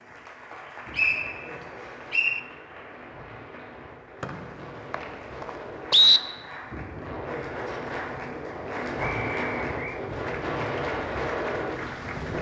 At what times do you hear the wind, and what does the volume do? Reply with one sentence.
The wind can be heard from 0.0 to 12.3 s, getting louder.